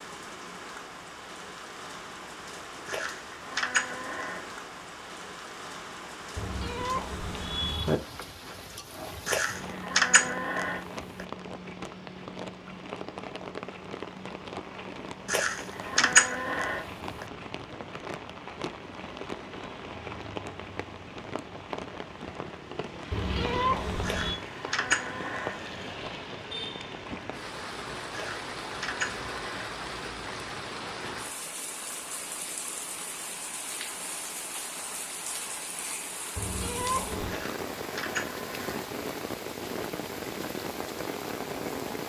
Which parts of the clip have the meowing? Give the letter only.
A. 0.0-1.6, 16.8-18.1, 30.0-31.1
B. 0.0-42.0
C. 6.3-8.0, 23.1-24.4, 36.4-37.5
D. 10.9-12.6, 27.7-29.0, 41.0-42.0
C.